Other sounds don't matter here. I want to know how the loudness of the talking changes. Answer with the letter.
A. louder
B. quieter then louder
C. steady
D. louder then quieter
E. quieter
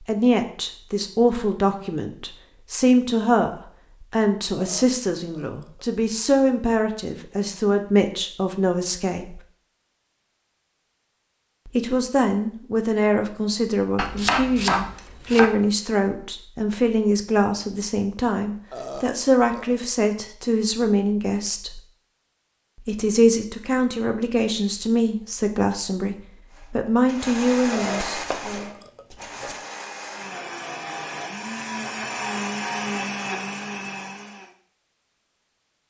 C.